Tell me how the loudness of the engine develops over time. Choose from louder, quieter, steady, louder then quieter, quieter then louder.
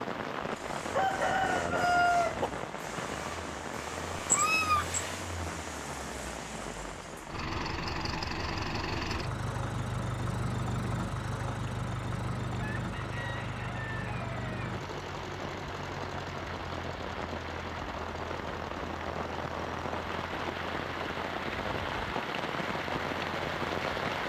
louder then quieter.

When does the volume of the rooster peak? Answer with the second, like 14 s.
2 s.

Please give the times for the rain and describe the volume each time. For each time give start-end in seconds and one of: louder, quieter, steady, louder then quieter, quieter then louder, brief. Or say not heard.
0.0-24.2 quieter then louder.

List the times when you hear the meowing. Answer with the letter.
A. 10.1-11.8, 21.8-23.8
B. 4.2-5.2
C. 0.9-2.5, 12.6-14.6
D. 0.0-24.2
B.